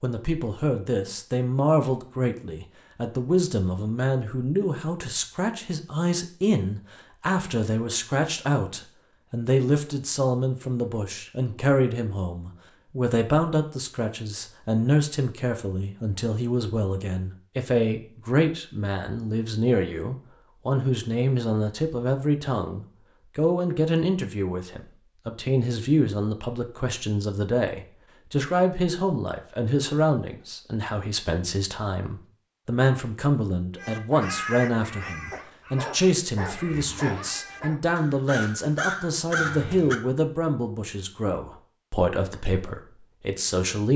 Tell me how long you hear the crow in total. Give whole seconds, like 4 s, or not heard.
6 s.